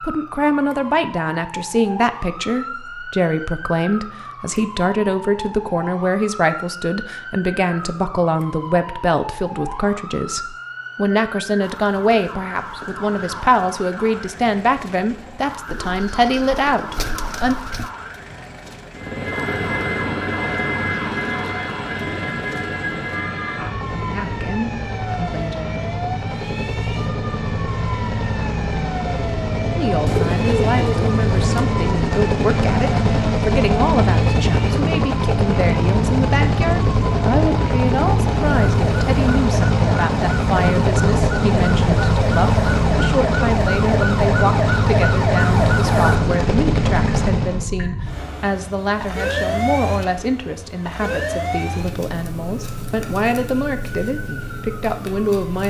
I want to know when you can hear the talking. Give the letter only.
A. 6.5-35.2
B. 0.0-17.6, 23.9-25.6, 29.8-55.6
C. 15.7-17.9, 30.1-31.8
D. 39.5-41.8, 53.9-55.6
B.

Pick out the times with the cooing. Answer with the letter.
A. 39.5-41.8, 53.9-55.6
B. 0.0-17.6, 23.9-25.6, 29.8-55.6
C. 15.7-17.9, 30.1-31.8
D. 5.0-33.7
C.